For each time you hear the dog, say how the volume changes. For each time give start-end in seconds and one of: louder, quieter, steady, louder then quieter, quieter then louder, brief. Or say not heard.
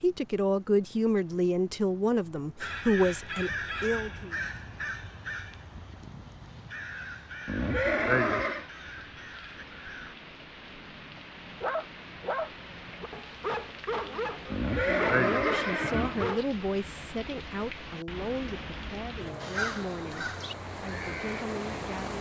11.3-16.4 quieter then louder.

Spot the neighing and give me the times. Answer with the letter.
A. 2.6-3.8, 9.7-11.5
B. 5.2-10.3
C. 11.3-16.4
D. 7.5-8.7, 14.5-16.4
D.